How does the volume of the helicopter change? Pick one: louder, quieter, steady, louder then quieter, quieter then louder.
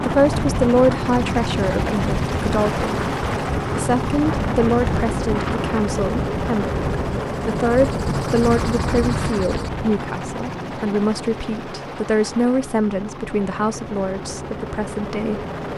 quieter.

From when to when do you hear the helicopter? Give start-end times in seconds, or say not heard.
0.0-15.7.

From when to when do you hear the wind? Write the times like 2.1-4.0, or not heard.
0.0-9.9.